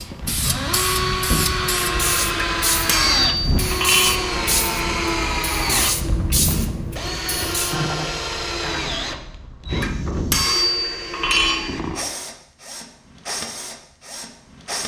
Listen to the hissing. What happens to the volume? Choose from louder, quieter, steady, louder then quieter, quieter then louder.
steady.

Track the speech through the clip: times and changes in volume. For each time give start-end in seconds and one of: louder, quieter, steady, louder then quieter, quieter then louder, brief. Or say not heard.
not heard.